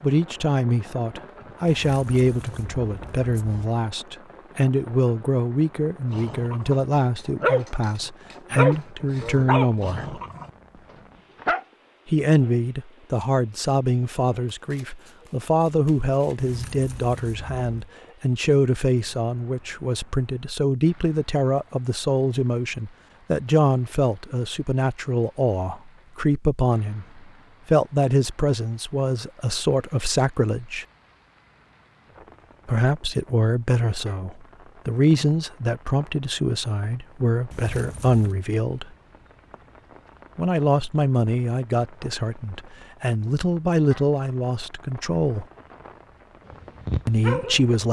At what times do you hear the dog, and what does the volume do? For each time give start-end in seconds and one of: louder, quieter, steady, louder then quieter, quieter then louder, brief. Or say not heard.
6.1-11.7 louder then quieter
46.5-47.8 brief.